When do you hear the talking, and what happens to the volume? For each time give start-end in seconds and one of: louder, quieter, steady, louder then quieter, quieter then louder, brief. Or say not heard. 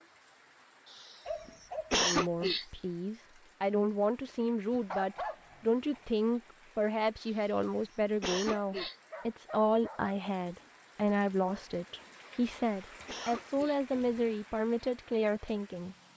1.9-15.9 steady.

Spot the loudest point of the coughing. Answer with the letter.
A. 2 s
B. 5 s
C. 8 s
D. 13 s
A.